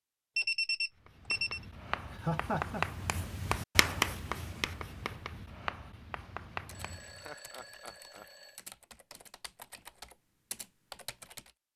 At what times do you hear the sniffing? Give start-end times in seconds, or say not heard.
not heard.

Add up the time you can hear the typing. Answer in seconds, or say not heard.
5 s.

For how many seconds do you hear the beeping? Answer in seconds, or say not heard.
3 s.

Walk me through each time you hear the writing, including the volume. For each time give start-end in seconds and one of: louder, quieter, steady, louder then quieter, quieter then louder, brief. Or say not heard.
1.1-7.3 louder then quieter.